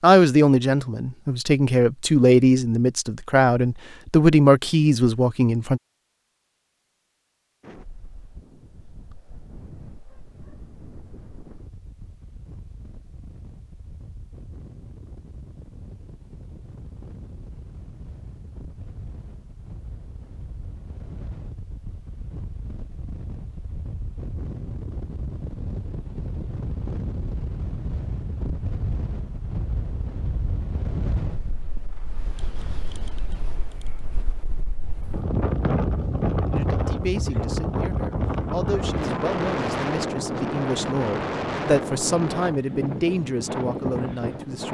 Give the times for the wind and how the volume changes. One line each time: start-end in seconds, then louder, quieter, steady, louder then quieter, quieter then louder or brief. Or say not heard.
7.6-44.6 louder.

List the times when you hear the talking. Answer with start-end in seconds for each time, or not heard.
0.0-5.8, 36.5-44.6.